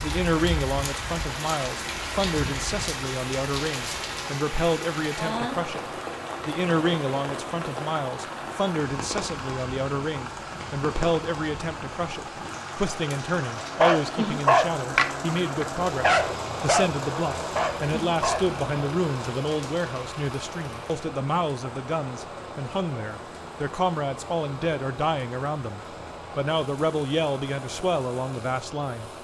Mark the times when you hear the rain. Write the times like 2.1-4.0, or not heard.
0.0-29.1.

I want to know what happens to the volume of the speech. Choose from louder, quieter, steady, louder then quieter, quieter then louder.
steady.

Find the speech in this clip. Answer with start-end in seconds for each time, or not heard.
0.0-29.1.